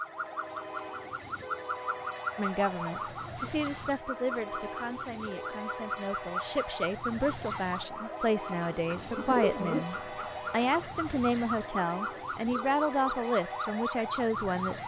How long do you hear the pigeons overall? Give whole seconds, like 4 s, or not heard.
2 s.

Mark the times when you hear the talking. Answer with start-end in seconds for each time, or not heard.
2.4-14.8.